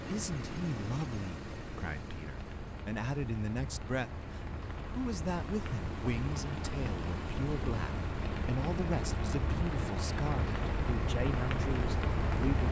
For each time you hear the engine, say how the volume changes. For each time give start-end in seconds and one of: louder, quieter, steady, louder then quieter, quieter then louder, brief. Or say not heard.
0.0-12.6 quieter then louder.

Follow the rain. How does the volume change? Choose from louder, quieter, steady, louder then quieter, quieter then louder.
louder.